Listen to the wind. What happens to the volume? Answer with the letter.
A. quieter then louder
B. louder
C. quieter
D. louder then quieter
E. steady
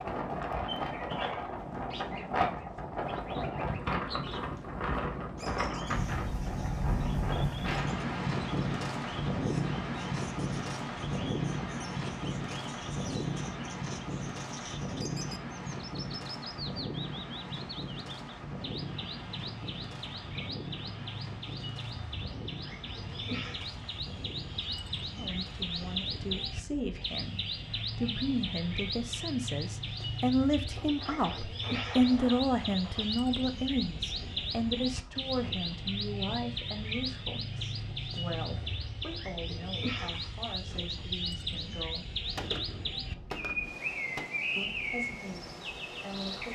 C.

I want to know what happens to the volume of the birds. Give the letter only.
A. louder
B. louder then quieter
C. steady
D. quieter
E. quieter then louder
A.